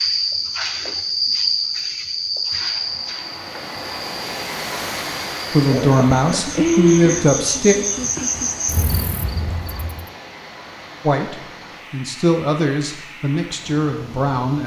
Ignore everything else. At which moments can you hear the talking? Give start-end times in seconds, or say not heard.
5.5-7.8, 11.0-14.6.